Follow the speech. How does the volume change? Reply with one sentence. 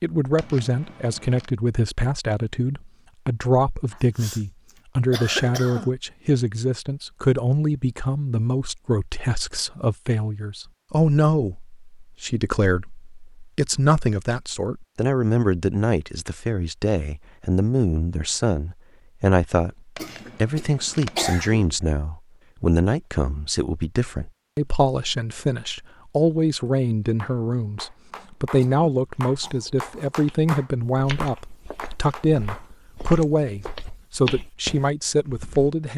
The volume of the speech stays about the same.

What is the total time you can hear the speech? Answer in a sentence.
You can hear the speech for 35 seconds altogether.